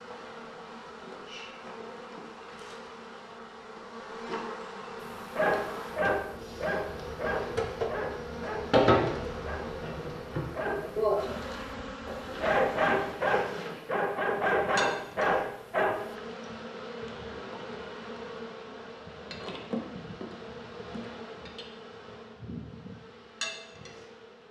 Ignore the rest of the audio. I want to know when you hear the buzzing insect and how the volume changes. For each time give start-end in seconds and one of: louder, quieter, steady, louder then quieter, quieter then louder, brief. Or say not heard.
0.0-24.4 louder then quieter.